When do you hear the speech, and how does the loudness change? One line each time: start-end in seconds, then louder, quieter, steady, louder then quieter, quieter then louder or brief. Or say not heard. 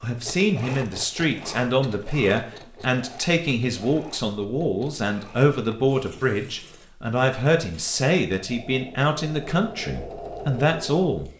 0.0-11.3 steady.